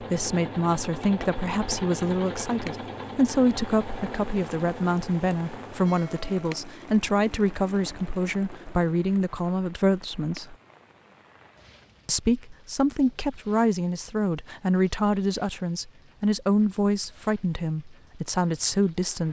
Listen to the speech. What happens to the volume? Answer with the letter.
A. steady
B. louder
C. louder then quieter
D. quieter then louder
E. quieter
A.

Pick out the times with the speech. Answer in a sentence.
The speech can be heard from 0.0 to 10.6 s and from 12.1 to 19.2 s.